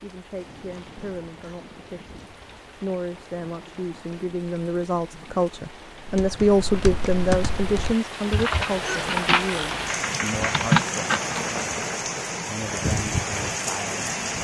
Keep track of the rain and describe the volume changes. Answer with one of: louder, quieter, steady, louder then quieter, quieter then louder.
louder.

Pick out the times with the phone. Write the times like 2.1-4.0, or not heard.
not heard.